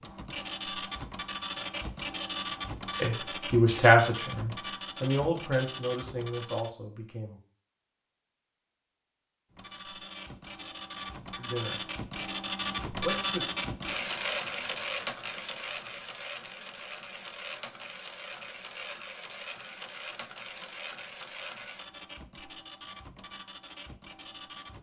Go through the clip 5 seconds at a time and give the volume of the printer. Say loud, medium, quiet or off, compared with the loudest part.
loud, medium, loud, medium, medium.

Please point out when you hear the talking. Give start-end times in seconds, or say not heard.
3.0-7.4, 11.3-11.8, 13.0-13.4.